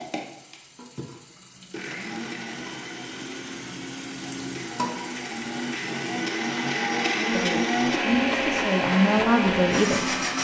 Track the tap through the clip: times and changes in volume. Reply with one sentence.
You can hear the tap from 0.0 to 6.2 s, getting louder.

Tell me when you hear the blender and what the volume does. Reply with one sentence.
You can hear the blender from 0.0 to 10.4 s, getting louder.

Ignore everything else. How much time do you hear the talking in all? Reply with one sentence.
You can hear the talking for 3 seconds altogether.